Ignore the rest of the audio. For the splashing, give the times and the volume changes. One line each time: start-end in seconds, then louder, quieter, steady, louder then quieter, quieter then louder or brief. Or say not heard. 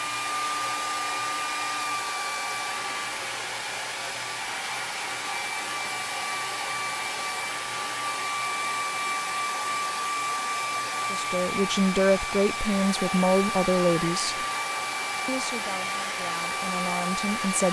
not heard.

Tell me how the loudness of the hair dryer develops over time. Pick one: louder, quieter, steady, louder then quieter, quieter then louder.
steady.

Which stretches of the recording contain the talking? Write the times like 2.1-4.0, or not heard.
11.1-14.4, 15.2-17.6.